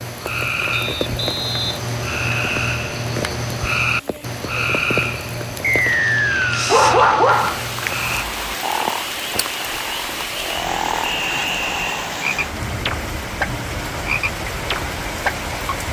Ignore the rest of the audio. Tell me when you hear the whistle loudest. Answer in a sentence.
The loudest moment of the whistle is at 6 seconds.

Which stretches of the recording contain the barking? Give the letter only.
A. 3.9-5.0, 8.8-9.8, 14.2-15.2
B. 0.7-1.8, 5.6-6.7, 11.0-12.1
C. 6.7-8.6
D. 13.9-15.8
C.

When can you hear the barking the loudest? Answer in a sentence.
The volume of the barking peaks at 7 seconds.